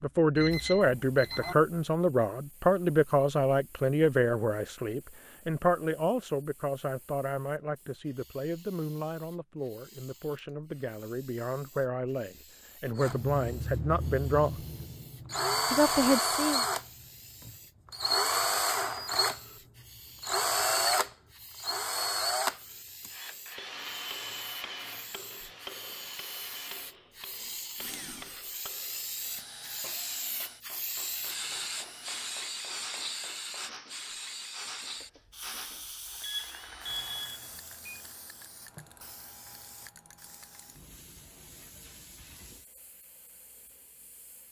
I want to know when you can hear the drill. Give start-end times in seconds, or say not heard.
12.9-37.4.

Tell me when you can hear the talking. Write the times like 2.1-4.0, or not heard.
0.0-14.6, 15.7-16.6.